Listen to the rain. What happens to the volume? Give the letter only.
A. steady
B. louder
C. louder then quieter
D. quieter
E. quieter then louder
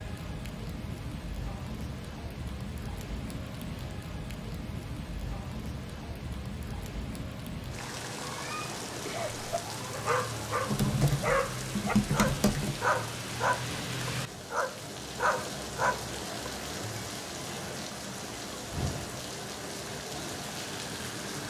A.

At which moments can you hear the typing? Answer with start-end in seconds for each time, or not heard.
10.7-12.8.